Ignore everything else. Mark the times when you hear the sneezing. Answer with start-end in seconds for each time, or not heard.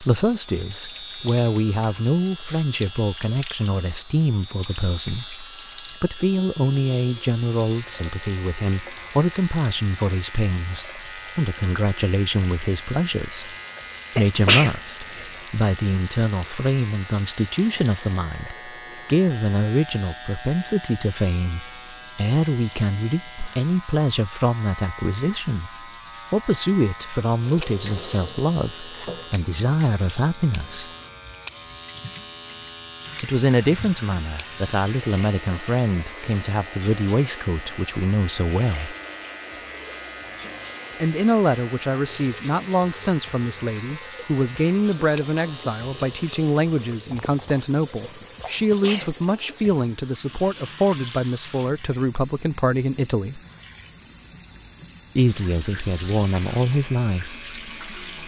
14.2-15.2, 47.1-49.1.